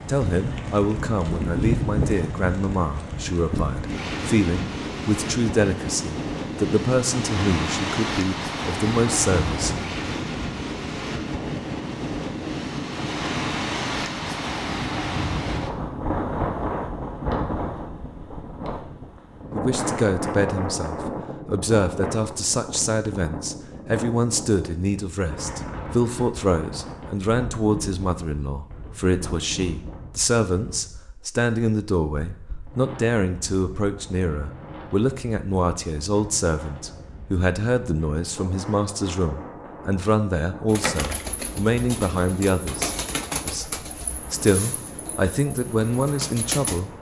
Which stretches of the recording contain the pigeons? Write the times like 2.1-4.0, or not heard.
40.6-46.8.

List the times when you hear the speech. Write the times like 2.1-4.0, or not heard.
0.1-9.8, 19.5-46.9.